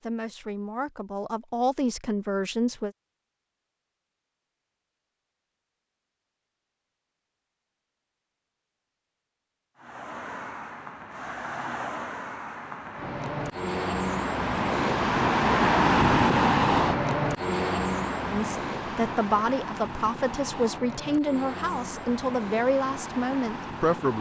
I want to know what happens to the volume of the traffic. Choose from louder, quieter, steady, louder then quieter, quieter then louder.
louder then quieter.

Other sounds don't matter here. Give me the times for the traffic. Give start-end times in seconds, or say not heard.
9.8-24.1.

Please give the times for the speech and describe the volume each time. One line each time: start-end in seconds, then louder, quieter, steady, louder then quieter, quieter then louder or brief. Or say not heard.
0.0-2.9 brief
18.3-24.1 steady.